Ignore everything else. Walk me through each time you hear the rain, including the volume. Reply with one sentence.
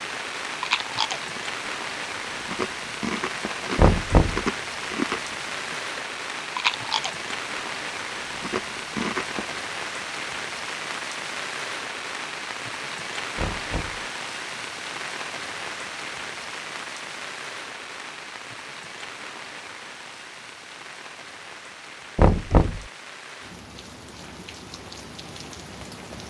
You can hear the rain from 0.0 to 26.2 s, getting quieter.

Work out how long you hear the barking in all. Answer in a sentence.
You can't hear the barking here.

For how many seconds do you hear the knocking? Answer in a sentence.
The knocking can be heard for 2 seconds in total.